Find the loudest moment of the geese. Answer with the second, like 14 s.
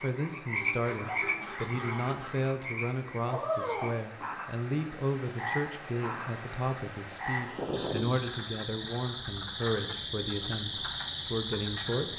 8 s.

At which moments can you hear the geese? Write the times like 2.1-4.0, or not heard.
0.8-2.5, 7.5-9.4.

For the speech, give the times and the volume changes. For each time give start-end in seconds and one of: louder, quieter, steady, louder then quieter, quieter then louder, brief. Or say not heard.
0.0-12.1 steady.